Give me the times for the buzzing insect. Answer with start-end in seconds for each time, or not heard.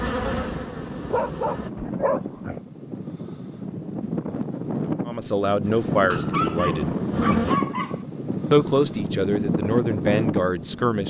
0.0-1.7, 5.6-7.5.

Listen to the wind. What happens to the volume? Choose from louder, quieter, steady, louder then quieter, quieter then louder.
louder.